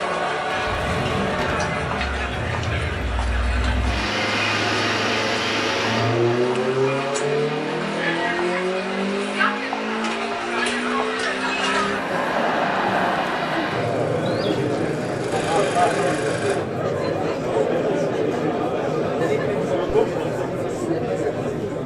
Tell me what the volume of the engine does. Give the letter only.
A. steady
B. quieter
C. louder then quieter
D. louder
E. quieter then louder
C.